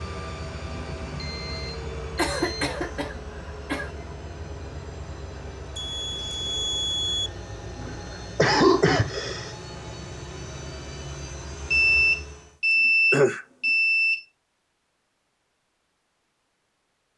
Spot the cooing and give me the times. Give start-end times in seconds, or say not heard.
not heard.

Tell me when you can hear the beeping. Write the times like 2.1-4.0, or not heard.
1.1-2.9, 5.8-7.3, 11.7-14.2.